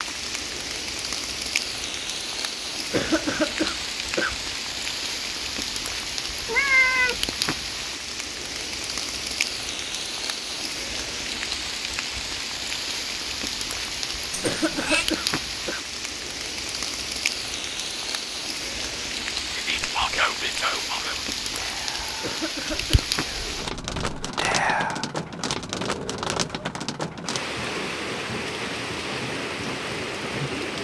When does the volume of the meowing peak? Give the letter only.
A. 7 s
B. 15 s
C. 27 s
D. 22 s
A.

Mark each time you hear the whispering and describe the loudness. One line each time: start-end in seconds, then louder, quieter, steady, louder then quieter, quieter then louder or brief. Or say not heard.
19.5-25.1 quieter then louder.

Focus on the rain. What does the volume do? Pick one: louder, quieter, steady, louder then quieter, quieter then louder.
steady.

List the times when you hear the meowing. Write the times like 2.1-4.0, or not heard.
6.4-7.2, 14.3-15.1, 25.5-26.7.